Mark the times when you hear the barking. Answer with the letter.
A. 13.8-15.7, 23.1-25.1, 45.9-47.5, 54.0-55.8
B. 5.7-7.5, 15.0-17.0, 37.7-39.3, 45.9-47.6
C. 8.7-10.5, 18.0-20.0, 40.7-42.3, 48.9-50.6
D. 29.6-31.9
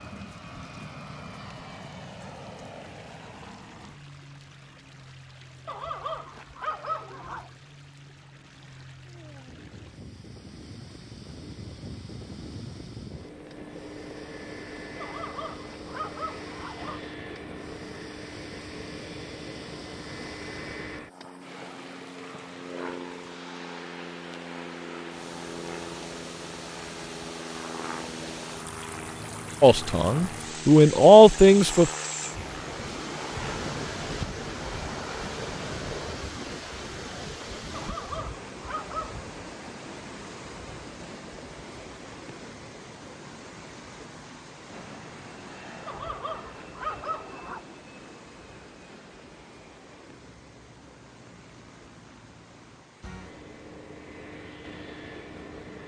B.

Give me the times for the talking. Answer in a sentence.
You can hear the talking from 29.6 to 31.9 s.